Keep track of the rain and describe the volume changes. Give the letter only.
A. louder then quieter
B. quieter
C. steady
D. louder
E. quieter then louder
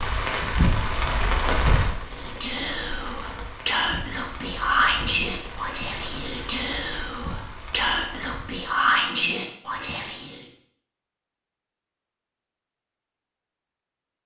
B.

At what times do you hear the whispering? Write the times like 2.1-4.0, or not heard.
2.1-10.4.